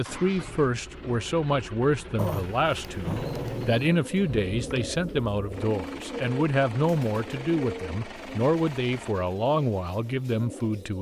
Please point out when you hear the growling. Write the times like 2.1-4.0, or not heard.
2.1-3.9.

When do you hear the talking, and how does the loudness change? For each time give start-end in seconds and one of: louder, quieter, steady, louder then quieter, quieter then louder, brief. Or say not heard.
0.0-10.9 steady.